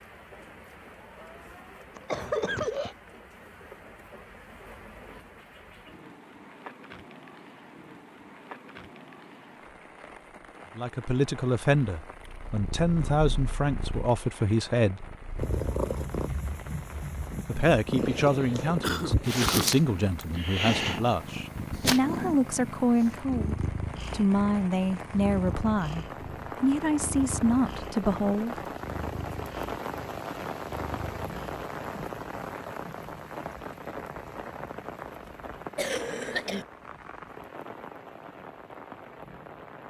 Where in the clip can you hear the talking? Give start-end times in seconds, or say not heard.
10.8-15.1, 17.4-28.6.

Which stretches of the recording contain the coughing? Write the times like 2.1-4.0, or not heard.
1.9-3.0, 18.8-19.8, 35.8-36.6.